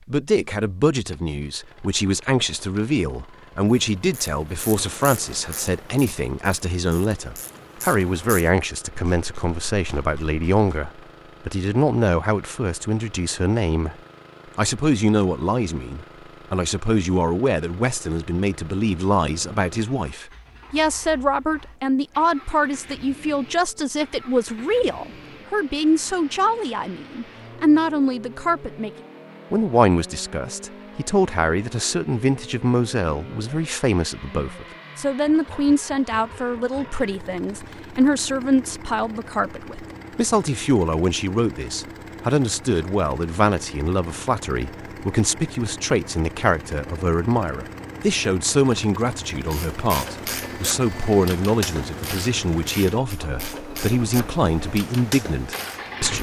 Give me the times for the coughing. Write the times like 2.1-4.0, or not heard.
not heard.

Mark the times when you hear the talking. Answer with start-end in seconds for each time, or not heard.
0.1-13.9, 14.6-28.9, 29.5-56.1.